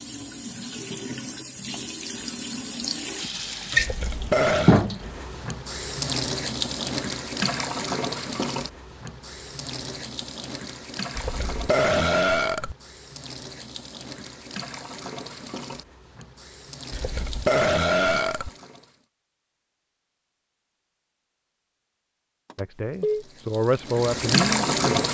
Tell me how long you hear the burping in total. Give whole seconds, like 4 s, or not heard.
4 s.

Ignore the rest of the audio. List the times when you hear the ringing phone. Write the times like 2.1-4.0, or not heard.
22.5-23.2.